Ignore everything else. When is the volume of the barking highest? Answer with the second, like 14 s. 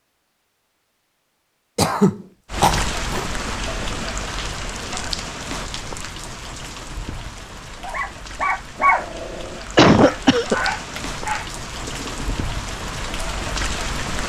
9 s.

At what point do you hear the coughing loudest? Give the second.
10 s.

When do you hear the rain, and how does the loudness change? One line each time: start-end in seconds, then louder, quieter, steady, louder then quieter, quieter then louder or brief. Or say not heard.
2.5-14.2 quieter then louder.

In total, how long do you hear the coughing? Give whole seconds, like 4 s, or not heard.
2 s.